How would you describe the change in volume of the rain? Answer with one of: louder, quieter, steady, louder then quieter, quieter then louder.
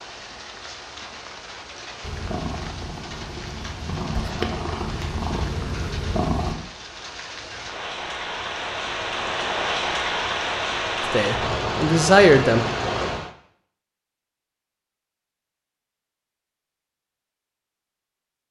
louder.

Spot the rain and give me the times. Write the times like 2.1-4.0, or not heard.
0.0-13.3.